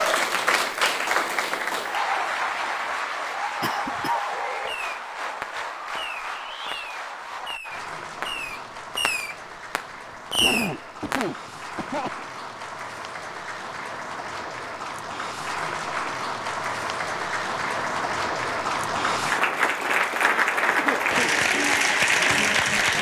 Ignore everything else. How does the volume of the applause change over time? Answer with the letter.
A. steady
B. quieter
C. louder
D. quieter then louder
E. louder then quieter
D.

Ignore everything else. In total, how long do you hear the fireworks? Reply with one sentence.
You can hear the fireworks for 7 seconds altogether.